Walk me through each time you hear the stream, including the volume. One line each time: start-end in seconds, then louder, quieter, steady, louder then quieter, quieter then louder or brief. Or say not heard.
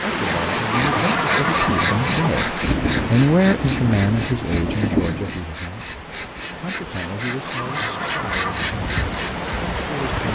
0.0-10.3 quieter then louder.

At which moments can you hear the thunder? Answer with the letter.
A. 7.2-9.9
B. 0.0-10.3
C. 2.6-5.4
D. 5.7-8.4
C.